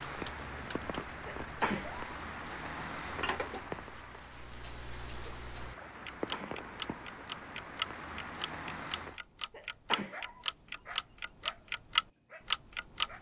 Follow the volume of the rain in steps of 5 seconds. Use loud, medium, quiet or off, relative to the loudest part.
loud, loud, off.